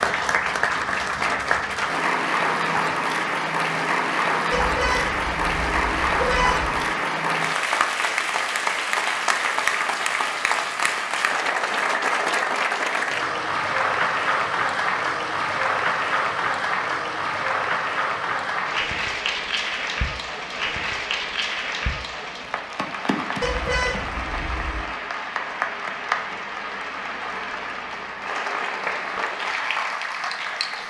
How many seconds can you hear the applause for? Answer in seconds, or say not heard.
31 s.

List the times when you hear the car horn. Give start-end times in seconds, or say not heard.
4.5-6.8, 23.4-24.9.